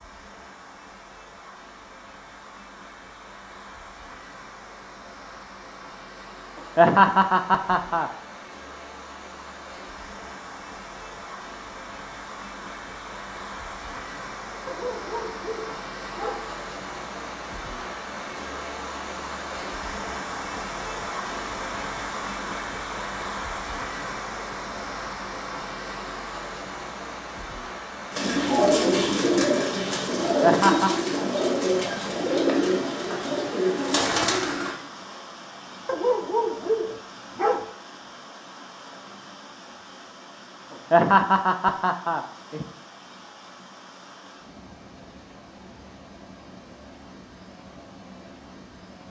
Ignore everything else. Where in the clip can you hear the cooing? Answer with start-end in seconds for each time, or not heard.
28.1-34.8.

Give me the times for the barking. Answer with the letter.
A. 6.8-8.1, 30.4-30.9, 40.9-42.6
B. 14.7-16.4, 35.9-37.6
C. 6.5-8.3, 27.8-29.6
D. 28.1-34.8
B.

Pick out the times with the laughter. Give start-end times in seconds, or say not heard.
6.8-8.1, 30.4-30.9, 40.9-42.6.